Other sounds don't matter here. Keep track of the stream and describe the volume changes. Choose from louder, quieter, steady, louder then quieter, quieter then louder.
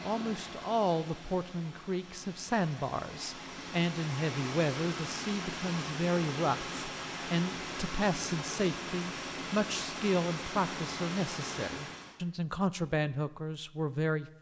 louder.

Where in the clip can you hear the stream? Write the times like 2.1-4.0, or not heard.
0.0-12.2.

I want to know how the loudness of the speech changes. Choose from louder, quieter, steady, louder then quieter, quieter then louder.
steady.